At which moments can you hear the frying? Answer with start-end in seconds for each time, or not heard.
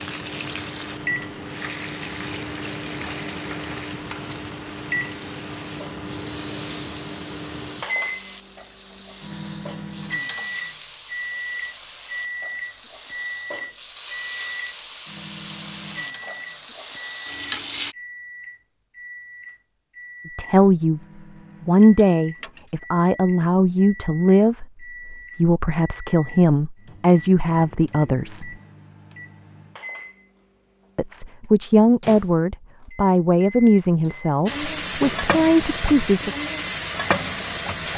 0.0-17.9, 34.5-37.9.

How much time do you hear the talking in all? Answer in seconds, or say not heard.
13 s.